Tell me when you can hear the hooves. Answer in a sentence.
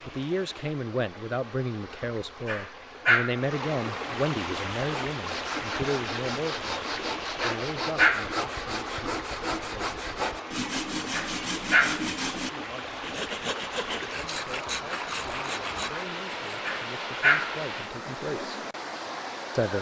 You can't hear the hooves here.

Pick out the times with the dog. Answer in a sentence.
You can hear the dog from 2.5 to 3.4 s, from 7.4 to 8.3 s, from 11.1 to 12.1 s and from 16.6 to 17.6 s.